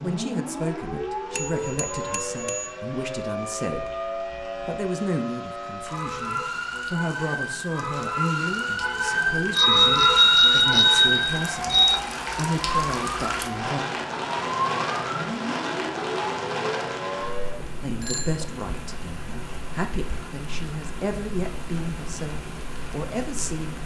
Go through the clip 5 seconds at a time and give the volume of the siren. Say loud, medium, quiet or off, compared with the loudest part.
medium, loud, loud, medium, off.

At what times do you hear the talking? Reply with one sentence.
The talking can be heard from 0.0 to 3.9 s, from 4.7 to 13.8 s and from 17.8 to 23.8 s.